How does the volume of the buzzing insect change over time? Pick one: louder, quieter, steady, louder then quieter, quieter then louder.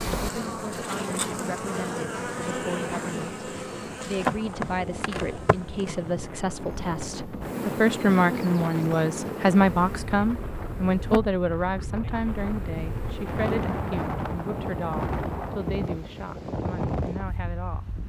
quieter.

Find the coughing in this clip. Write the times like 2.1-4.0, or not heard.
not heard.